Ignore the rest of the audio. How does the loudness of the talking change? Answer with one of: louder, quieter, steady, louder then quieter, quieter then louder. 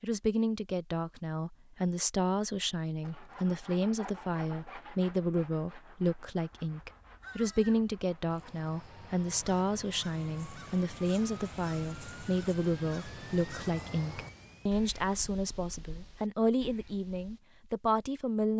steady.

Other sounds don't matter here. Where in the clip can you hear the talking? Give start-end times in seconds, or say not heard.
0.0-18.5.